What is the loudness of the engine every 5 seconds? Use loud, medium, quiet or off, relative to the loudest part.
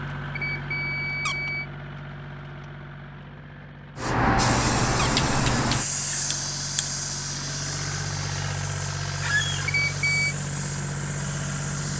medium, loud, loud.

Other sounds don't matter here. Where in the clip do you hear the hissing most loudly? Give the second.
5 s.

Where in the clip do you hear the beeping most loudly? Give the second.
10 s.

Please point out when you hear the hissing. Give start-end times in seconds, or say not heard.
4.0-11.9.